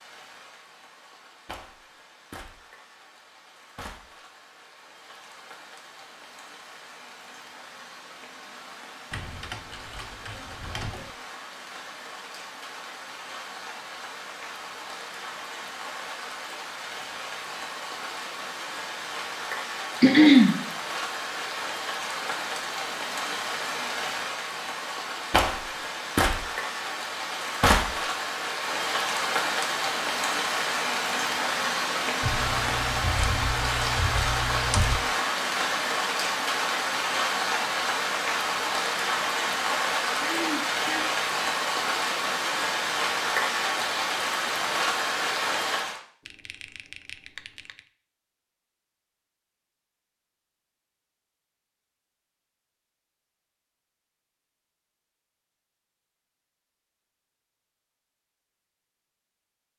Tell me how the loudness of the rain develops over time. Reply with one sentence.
The volume of the rain goes up.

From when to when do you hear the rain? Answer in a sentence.
The rain can be heard from 0.0 to 46.0 s.